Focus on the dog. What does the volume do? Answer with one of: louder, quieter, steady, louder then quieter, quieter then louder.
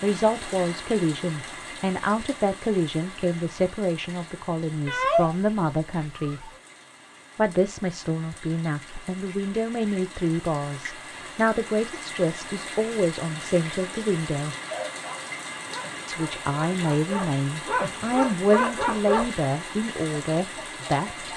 quieter then louder.